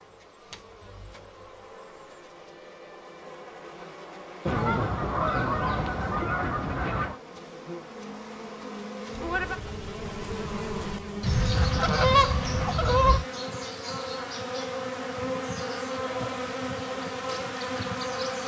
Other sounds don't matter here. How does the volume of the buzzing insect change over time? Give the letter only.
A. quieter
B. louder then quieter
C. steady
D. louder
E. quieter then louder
D.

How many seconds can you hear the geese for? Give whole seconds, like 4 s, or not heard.
5 s.